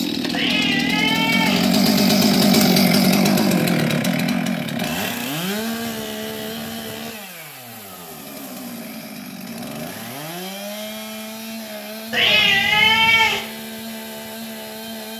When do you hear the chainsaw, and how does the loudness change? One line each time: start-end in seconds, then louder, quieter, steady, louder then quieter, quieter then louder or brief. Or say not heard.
0.0-15.1 quieter.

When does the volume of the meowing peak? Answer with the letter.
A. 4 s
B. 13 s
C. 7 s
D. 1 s
B.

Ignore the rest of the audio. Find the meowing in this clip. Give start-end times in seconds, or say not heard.
0.3-1.6, 12.1-13.4.